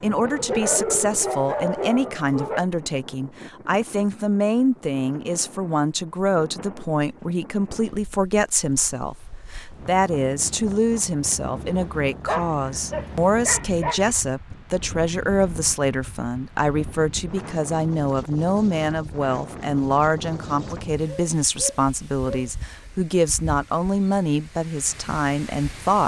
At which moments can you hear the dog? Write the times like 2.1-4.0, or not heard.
0.2-2.6, 12.2-14.2, 21.1-22.5.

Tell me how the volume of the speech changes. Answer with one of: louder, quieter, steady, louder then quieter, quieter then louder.
steady.